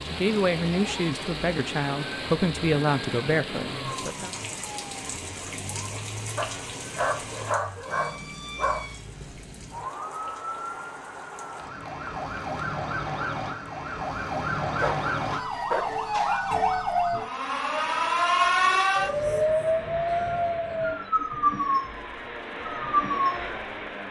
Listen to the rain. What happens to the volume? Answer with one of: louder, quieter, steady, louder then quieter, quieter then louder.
quieter.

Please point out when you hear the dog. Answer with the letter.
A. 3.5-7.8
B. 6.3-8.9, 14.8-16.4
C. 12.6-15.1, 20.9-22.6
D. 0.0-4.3
B.